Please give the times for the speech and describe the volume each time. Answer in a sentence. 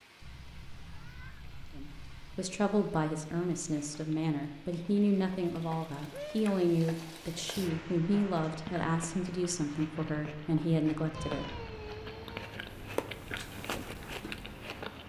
The speech can be heard from 1.8 to 11.6 s, at a steady volume.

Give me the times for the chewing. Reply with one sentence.
The chewing can be heard from 8.4 to 15.0 s.